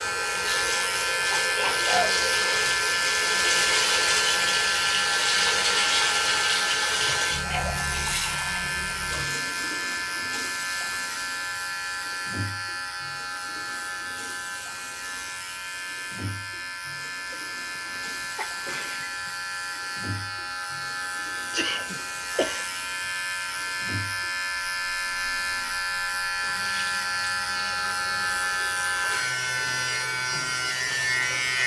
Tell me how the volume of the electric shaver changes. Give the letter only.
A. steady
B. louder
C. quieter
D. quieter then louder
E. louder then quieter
D.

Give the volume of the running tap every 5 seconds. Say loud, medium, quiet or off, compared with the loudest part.
loud, loud, quiet, quiet, quiet, quiet, quiet.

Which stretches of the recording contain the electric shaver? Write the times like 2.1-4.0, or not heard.
0.0-31.6.